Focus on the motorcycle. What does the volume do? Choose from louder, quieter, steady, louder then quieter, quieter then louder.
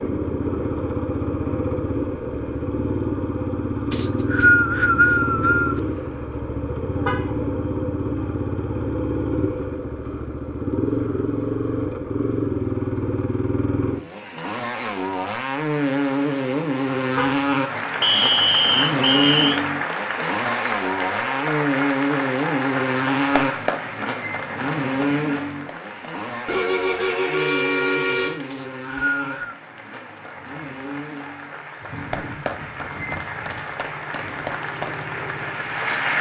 quieter.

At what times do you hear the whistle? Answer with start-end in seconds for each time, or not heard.
3.9-5.8, 18.0-19.6, 28.5-29.6.